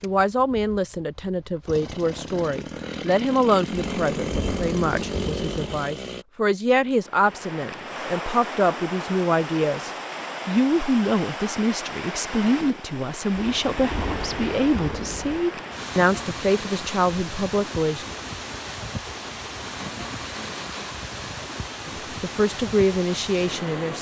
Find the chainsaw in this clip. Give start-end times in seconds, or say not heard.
0.0-6.2.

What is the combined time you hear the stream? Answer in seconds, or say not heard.
17 s.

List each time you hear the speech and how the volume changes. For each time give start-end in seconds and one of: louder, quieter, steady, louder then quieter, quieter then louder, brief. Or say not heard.
0.0-18.1 steady
21.9-23.9 brief.